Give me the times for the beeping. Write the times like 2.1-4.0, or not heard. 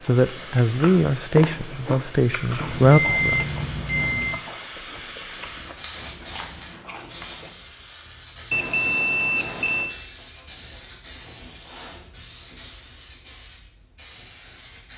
2.6-4.4, 8.5-9.9.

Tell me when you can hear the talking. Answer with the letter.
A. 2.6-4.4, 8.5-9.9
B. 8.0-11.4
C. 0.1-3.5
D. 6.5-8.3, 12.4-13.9
C.